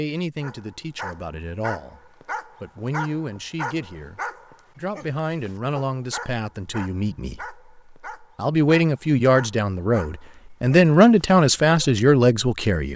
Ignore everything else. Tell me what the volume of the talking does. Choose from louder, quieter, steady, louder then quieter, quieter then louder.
louder.